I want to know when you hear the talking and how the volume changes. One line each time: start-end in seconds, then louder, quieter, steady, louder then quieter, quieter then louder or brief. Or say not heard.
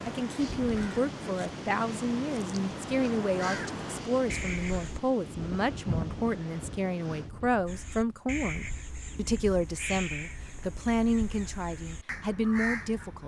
0.1-13.2 steady.